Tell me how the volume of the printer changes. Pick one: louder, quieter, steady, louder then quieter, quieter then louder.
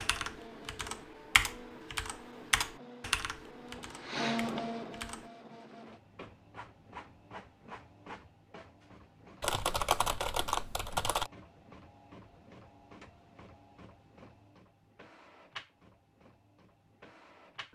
louder then quieter.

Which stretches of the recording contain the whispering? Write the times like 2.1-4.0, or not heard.
not heard.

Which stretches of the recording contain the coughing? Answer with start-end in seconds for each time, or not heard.
not heard.